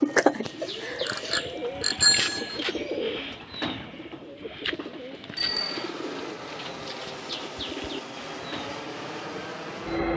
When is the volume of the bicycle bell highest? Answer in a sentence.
The loudest moment of the bicycle bell is at 2 seconds.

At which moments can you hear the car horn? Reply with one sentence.
The car horn can't be heard in this clip.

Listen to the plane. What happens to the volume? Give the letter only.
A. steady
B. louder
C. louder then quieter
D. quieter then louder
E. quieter
A.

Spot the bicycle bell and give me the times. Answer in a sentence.
You can hear the bicycle bell from 1.1 to 2.6 s and from 5.3 to 5.8 s.